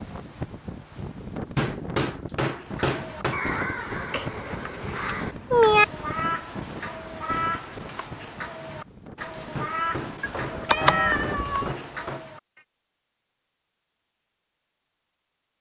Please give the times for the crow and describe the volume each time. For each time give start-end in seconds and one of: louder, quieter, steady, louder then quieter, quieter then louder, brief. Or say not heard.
2.5-12.6 steady.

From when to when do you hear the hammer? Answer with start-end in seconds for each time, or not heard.
1.6-3.4, 9.6-12.2.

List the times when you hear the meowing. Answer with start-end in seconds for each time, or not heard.
4.1-5.8, 10.2-11.7.